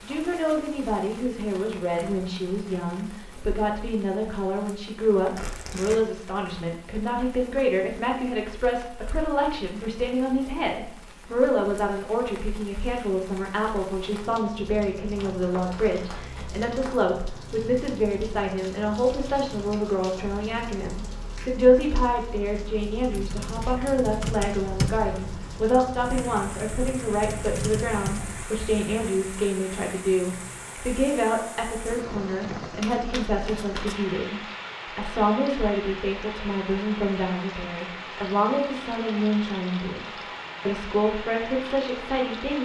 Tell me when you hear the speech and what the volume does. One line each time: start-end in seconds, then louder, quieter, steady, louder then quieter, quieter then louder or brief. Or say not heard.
0.0-42.5 steady.